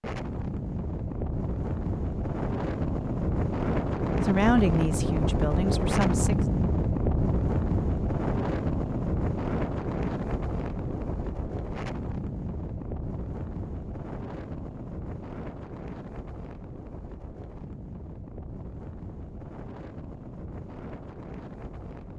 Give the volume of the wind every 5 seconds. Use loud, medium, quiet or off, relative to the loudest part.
loud, loud, medium, quiet, quiet.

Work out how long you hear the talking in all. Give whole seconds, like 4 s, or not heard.
2 s.